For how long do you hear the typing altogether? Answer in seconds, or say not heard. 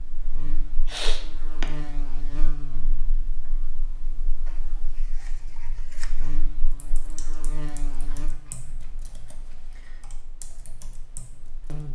5 s.